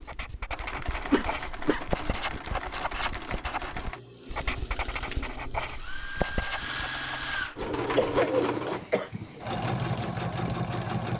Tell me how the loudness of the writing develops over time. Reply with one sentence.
The volume of the writing goes down.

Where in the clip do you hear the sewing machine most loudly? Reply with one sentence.
The volume of the sewing machine peaks at 8 seconds.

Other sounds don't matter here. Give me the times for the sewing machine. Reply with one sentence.
You can hear the sewing machine from 0.0 to 11.1 s.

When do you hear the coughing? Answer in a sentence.
The coughing can be heard from 0.9 to 2.0 s and from 8.0 to 9.1 s.